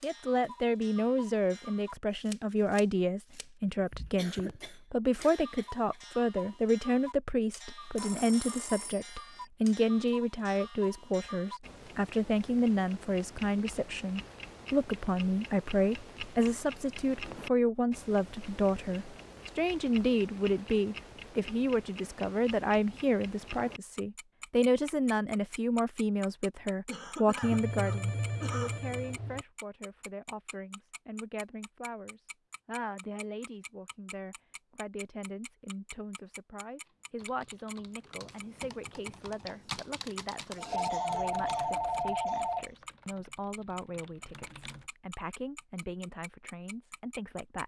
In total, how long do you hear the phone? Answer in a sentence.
The phone can be heard for 6 seconds in total.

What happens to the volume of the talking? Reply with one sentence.
The loudness of the talking goes down.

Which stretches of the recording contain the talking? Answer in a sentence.
You can hear the talking from 0.0 to 47.6 s.